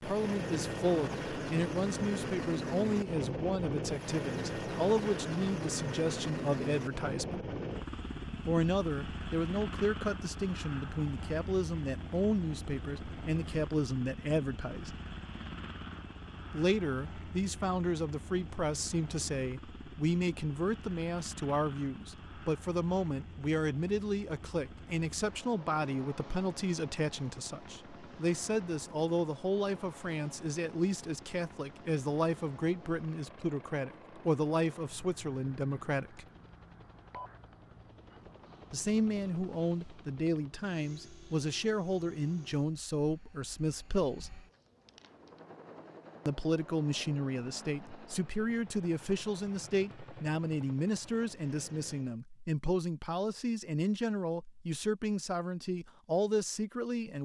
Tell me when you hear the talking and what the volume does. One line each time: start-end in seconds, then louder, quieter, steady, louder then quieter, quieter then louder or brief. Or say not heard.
0.0-7.5 steady
8.4-14.9 steady
16.5-36.2 steady
38.7-44.4 steady
46.2-57.2 steady.